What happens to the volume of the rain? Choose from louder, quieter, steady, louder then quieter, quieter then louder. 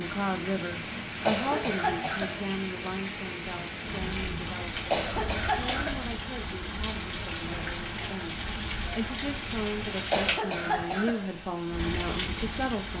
steady.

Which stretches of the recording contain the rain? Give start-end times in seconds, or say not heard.
0.0-12.9.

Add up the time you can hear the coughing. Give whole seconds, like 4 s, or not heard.
4 s.